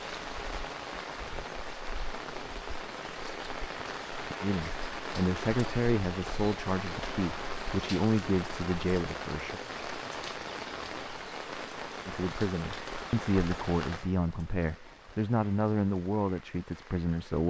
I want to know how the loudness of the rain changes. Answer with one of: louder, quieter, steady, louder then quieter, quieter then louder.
quieter.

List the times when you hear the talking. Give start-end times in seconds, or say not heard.
4.4-9.6, 12.1-17.4.